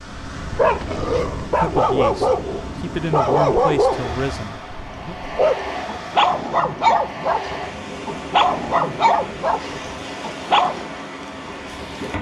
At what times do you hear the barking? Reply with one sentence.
You can hear the barking from 0.3 to 10.8 s.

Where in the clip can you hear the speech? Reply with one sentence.
You can hear the speech from 1.6 to 5.2 s.